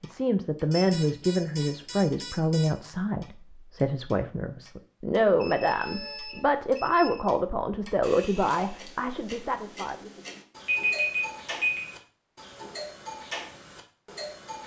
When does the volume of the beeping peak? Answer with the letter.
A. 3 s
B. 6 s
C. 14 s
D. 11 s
D.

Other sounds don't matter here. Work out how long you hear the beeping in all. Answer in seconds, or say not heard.
5 s.